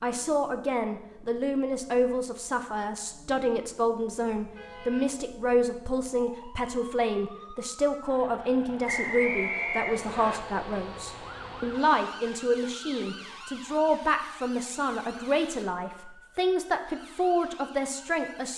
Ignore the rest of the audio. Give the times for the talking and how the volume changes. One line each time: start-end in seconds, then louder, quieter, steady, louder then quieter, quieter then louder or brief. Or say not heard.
0.0-18.5 steady.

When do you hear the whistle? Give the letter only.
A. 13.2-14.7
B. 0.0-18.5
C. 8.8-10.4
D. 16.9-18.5
C.